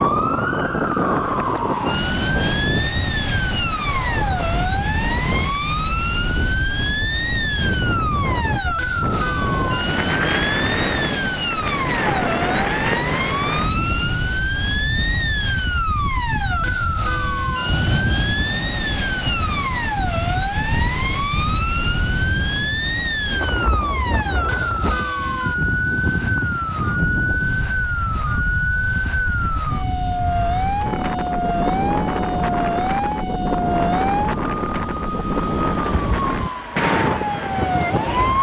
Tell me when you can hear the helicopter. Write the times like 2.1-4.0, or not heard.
not heard.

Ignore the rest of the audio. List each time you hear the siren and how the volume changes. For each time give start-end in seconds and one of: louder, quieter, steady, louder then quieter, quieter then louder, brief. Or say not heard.
0.0-38.3 steady.